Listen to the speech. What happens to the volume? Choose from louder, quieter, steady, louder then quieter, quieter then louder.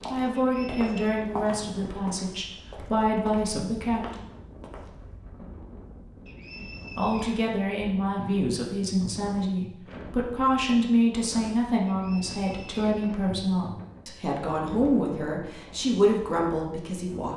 steady.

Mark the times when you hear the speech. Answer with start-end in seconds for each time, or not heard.
0.1-4.2, 7.0-17.3.